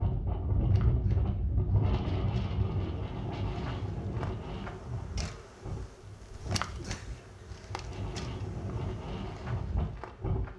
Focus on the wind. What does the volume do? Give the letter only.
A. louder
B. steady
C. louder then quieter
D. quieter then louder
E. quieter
D.